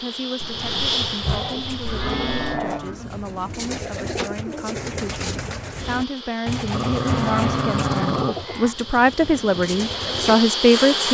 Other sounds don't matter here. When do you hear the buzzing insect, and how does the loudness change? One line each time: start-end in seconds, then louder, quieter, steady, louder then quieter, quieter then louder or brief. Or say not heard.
0.0-2.6 brief
5.8-11.1 louder.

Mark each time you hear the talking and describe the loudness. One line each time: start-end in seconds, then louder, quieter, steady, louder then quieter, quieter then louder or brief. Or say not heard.
0.0-11.1 louder.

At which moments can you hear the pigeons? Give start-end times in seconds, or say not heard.
0.5-10.4.